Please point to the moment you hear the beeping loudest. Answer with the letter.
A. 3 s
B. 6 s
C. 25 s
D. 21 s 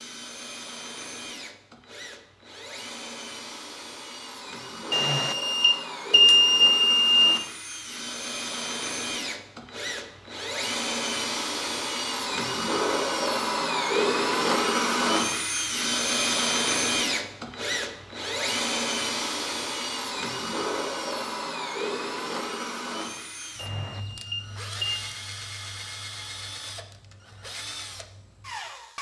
B.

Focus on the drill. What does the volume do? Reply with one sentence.
The loudness of the drill goes up, then down.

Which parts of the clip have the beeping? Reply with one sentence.
You can hear the beeping from 4.9 to 7.4 s and from 23.6 to 25.1 s.